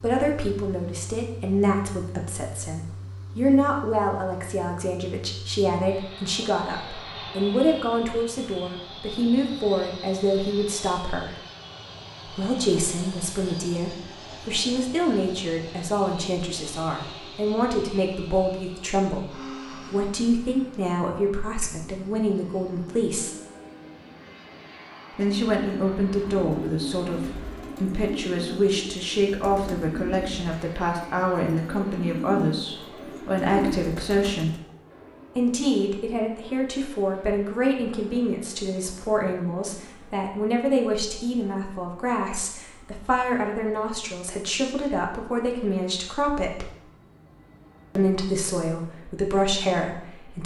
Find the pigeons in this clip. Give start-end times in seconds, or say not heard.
25.2-34.6.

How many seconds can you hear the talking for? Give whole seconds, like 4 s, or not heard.
46 s.